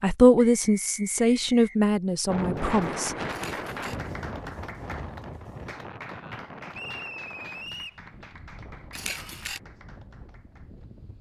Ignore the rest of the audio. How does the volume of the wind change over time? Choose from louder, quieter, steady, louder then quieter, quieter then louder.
quieter.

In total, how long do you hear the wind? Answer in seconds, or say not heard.
9 s.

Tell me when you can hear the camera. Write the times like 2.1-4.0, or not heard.
3.3-4.0, 8.9-9.6.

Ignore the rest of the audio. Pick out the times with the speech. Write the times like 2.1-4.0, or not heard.
0.0-3.1.